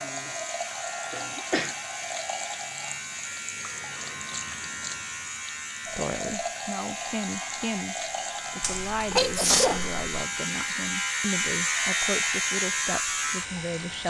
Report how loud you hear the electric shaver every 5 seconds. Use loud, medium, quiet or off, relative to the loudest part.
medium, medium, loud.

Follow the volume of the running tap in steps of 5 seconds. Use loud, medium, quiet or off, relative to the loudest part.
loud, loud, medium.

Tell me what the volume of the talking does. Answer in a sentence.
The loudness of the talking stays about the same.